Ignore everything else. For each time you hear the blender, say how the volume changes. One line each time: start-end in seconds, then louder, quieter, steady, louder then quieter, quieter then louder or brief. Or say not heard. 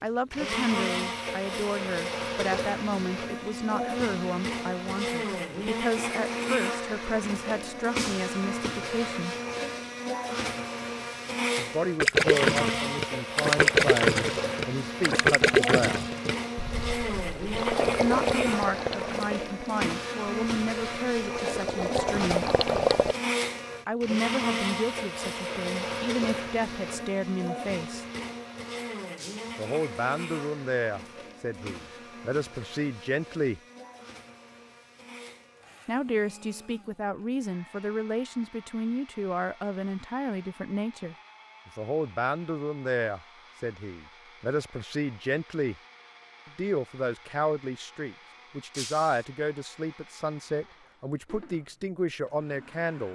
0.3-53.1 quieter.